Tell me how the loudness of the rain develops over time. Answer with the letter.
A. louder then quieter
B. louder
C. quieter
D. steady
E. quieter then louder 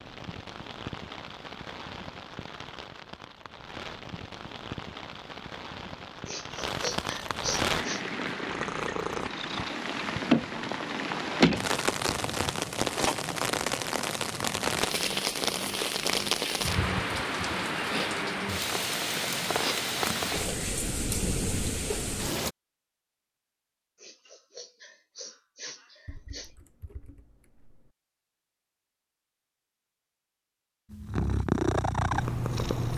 B.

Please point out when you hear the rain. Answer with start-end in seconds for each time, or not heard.
0.0-22.6.